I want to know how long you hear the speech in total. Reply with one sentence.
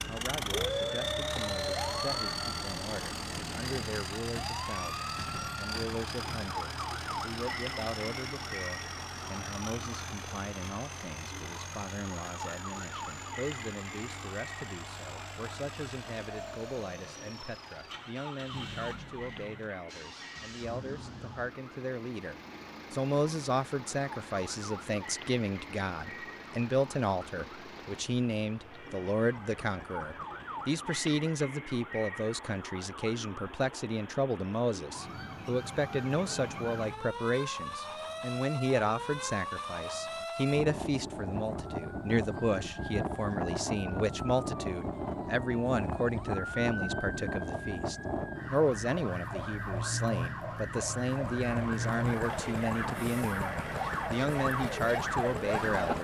The speech can be heard for 56 seconds in total.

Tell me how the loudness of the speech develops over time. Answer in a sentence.
The volume of the speech goes up.